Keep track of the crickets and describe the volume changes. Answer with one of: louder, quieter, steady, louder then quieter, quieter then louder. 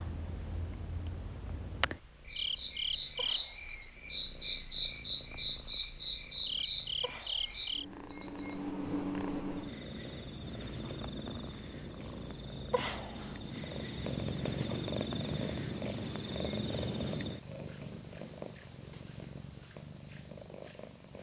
louder.